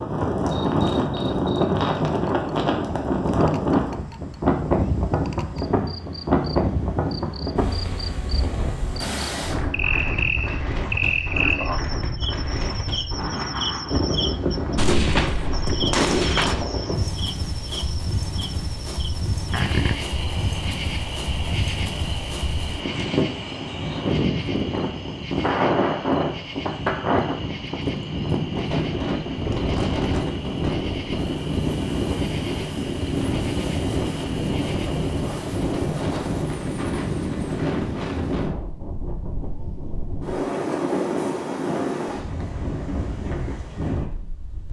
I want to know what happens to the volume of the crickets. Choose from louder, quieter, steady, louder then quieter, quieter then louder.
louder then quieter.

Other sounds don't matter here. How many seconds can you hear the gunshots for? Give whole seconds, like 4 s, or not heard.
2 s.